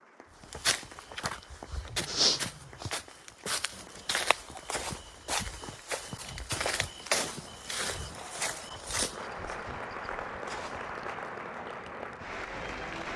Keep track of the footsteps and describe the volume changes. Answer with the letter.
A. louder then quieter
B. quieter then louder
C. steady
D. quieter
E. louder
D.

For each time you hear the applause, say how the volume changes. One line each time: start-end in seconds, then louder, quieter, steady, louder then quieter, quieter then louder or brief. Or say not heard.
0.0-13.1 louder.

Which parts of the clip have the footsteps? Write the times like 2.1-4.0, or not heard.
0.5-11.2.